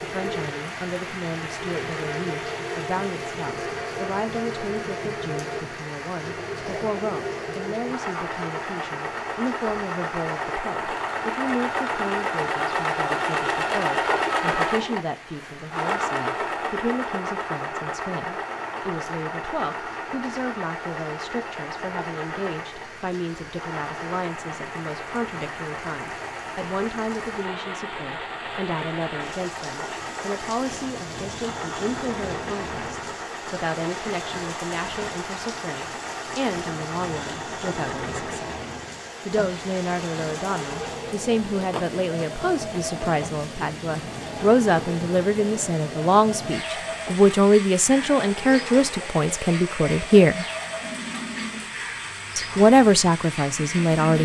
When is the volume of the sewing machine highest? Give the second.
14 s.